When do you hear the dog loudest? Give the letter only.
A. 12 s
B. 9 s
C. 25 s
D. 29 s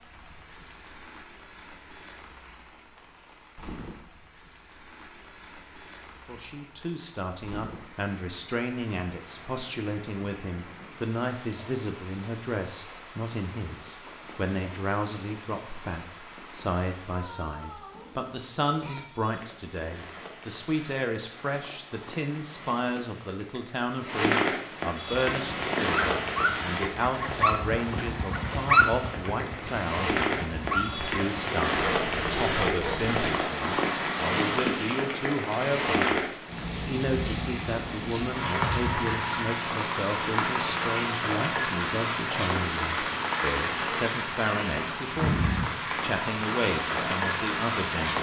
D.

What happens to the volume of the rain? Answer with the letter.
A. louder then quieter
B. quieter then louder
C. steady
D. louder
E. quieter
D.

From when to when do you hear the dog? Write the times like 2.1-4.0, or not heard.
25.3-33.2.